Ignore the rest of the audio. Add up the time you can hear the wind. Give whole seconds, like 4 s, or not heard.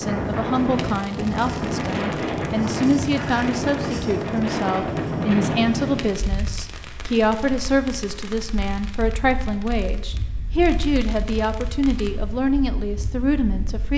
14 s.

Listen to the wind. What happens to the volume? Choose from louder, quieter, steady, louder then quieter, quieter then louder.
quieter.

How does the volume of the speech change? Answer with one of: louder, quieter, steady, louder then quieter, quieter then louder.
steady.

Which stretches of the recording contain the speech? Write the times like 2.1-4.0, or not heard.
0.0-13.9.